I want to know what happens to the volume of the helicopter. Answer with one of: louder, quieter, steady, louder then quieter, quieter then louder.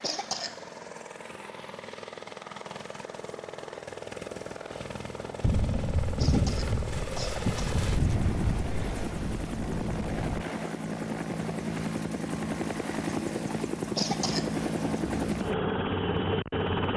louder.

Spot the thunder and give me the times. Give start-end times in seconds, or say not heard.
5.4-10.4.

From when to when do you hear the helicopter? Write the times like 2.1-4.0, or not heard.
0.0-16.9.